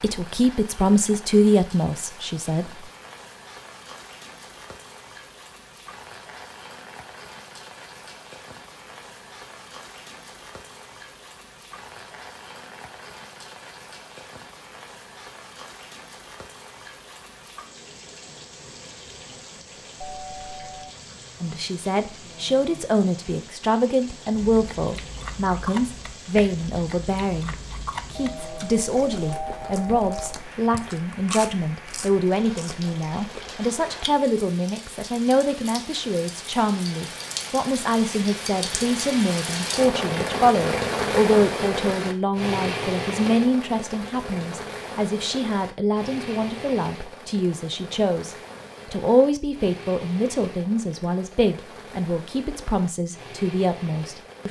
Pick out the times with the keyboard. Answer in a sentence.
The keyboard can't be heard in this clip.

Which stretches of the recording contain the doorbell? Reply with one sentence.
The doorbell can be heard from 20.0 to 20.9 s and from 28.1 to 30.4 s.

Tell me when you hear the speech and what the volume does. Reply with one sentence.
You can hear the speech briefly from 0.0 to 2.9 s; and from 21.4 to 54.4 s, at a steady volume.